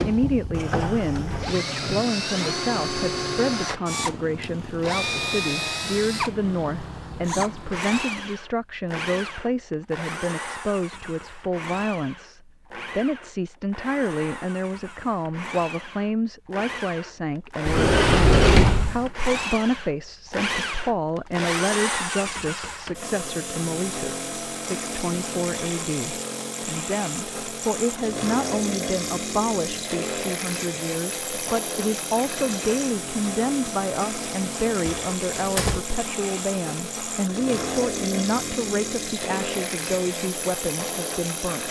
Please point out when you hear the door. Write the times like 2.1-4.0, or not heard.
0.5-1.6, 17.6-19.1, 34.8-35.8.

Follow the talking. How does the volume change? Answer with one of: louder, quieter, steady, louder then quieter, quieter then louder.
steady.